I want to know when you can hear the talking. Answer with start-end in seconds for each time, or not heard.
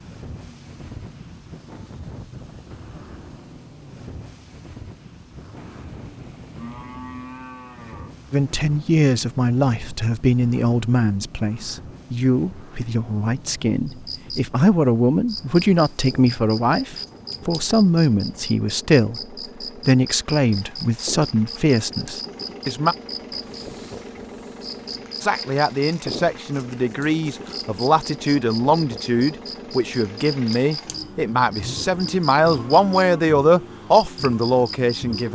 8.3-22.9, 25.2-35.3.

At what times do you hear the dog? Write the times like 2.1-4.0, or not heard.
not heard.